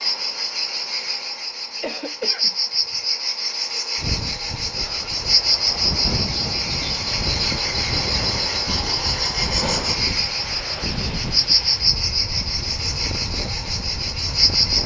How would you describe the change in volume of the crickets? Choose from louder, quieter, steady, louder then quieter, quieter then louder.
steady.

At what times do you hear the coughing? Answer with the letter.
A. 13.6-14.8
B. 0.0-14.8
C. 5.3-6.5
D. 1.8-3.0
D.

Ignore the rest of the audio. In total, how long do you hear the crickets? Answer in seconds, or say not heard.
15 s.